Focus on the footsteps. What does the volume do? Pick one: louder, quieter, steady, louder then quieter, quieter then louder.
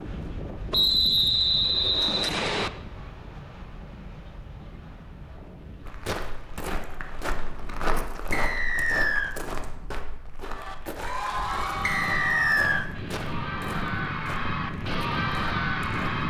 quieter.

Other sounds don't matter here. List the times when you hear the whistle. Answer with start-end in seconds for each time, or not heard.
0.7-2.7, 8.3-9.3, 11.8-12.8.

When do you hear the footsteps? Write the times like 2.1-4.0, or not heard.
5.8-16.2.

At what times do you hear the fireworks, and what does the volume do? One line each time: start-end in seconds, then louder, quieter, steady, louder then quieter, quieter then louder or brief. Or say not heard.
not heard.